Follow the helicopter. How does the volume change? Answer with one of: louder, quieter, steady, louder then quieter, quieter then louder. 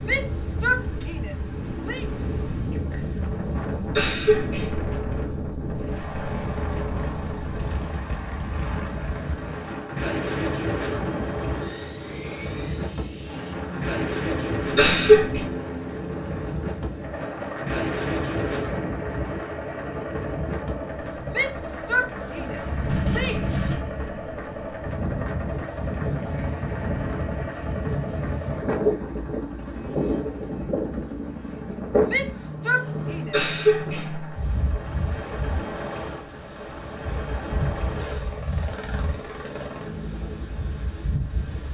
steady.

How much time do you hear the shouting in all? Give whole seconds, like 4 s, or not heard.
6 s.